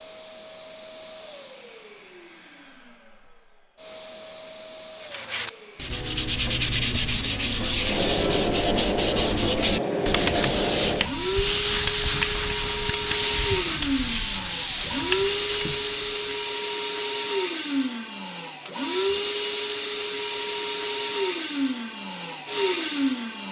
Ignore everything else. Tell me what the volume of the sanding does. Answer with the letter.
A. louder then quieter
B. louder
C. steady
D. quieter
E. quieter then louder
C.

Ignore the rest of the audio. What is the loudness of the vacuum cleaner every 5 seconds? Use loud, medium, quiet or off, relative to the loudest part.
quiet, loud, loud, loud, loud.